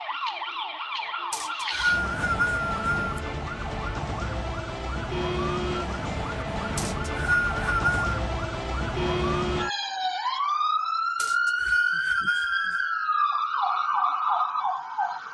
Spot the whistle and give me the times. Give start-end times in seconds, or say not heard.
1.3-3.1, 6.8-8.1, 11.2-12.9.